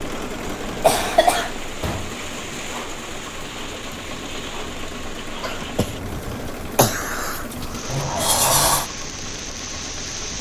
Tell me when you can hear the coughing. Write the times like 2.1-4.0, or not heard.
0.8-1.6, 5.4-8.0.